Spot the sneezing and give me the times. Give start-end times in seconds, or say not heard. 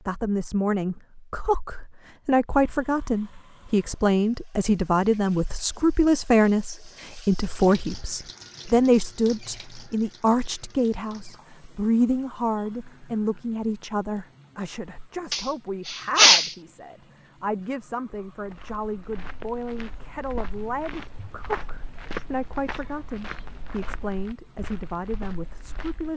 15.3-16.6.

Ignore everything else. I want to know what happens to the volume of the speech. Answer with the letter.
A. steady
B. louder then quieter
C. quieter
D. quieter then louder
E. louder
C.